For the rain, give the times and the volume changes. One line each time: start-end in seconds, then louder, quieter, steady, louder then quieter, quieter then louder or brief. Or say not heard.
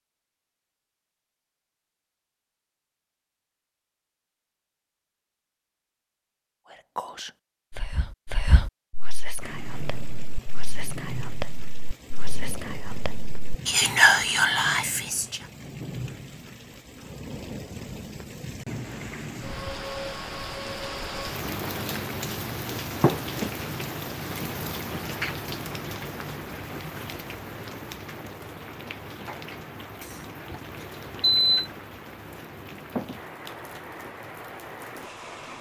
9.4-35.5 louder then quieter.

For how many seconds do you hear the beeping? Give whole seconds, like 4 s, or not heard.
2 s.